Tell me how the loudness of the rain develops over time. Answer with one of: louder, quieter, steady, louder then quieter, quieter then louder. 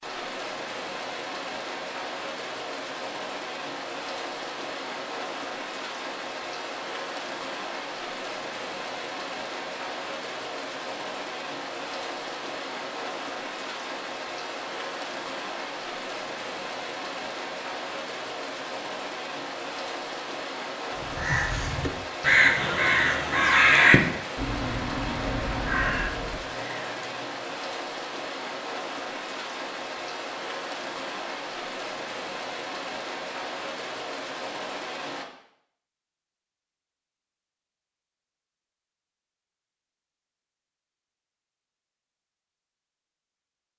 steady.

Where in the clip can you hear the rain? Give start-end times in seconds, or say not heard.
0.0-35.2.